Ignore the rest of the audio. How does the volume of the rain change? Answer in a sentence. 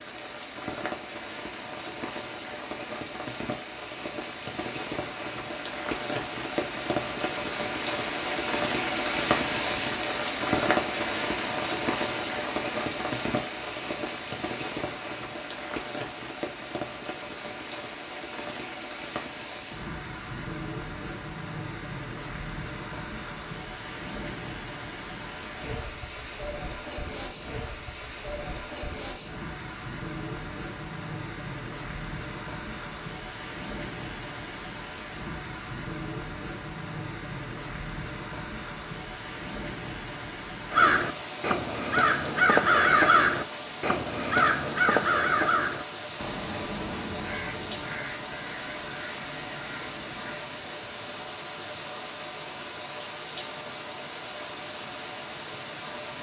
The loudness of the rain goes down.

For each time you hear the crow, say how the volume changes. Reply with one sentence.
The crow can be heard from 40.7 to 50.5 s, getting quieter.